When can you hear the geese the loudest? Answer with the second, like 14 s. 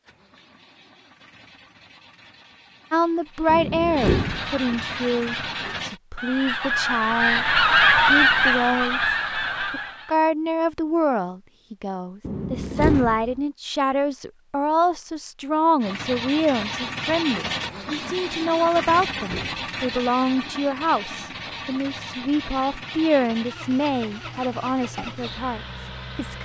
8 s.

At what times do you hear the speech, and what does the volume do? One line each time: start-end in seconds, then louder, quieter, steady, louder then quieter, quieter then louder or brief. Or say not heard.
2.9-26.4 steady.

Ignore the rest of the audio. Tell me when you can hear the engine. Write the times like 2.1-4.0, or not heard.
0.0-6.0, 15.8-26.4.